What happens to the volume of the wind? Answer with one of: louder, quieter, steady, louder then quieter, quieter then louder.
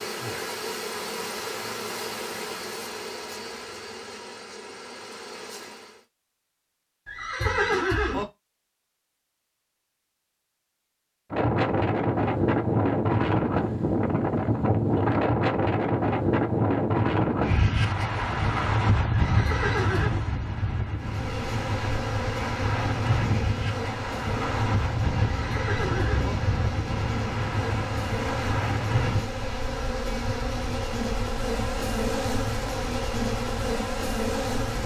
quieter.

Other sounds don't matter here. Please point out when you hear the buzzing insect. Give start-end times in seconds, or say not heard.
0.0-6.0, 20.9-34.8.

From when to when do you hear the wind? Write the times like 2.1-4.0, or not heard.
11.3-34.8.